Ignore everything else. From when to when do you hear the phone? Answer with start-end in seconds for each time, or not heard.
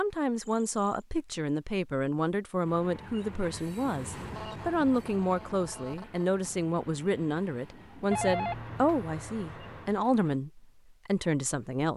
0.3-1.1, 4.3-6.3, 8.1-9.9.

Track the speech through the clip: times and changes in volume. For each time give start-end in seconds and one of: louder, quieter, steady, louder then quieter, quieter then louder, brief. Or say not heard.
0.0-11.9 steady.